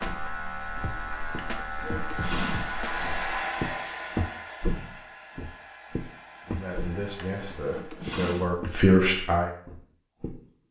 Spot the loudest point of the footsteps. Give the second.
4 s.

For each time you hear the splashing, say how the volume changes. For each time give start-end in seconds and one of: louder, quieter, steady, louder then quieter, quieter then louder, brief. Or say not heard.
not heard.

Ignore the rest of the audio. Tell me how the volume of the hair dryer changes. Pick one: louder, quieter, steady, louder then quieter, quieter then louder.
louder then quieter.